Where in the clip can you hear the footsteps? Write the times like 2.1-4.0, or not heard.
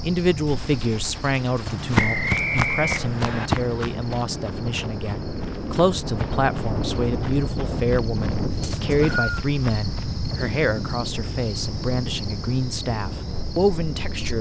1.6-10.1.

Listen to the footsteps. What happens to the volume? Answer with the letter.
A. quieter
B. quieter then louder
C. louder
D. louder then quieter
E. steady
A.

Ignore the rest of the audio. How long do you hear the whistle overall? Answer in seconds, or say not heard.
2 s.